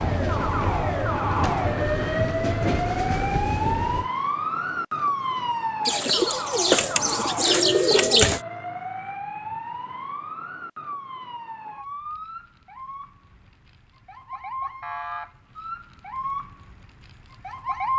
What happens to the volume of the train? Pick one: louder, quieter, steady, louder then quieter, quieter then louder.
steady.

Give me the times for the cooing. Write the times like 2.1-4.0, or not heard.
5.8-8.4.